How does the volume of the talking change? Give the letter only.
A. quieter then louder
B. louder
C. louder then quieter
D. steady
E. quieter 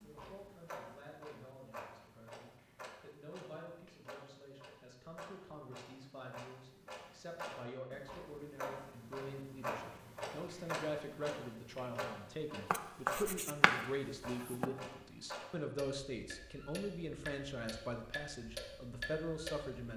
B.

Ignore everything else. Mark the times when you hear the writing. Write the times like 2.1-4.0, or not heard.
12.7-14.7.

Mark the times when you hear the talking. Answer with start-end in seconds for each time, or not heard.
0.0-19.9.